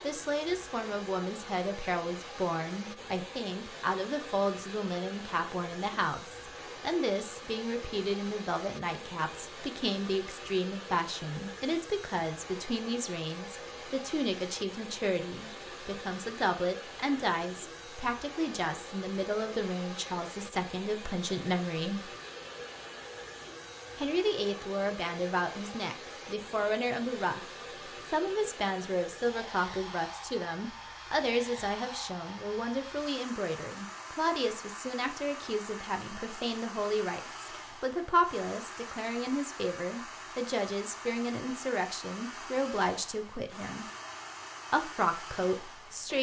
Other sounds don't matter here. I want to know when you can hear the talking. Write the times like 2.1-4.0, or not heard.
0.0-22.1, 23.9-27.4, 28.1-43.9, 44.7-46.1.